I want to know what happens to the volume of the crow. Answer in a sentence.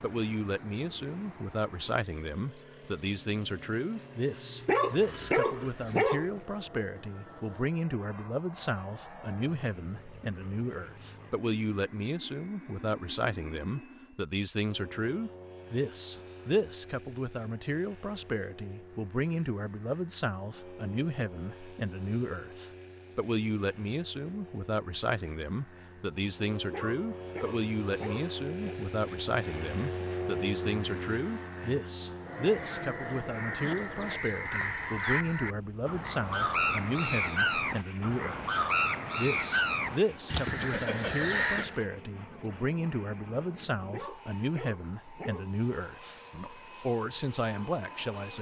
The volume of the crow goes up.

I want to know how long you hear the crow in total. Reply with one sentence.
You can hear the crow for 10 seconds altogether.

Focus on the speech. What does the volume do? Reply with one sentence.
The loudness of the speech stays about the same.